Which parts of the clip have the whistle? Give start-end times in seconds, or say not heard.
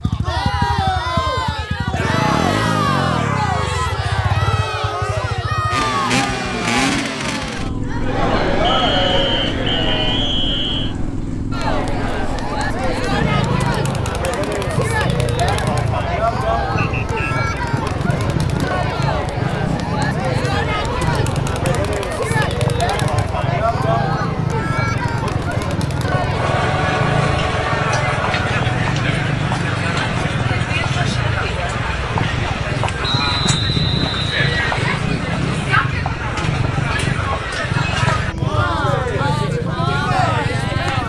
8.6-10.9, 16.8-17.4, 33.0-35.0.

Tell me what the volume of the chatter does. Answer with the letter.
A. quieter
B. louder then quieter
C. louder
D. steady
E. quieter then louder
D.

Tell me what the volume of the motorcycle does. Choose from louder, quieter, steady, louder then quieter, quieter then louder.
steady.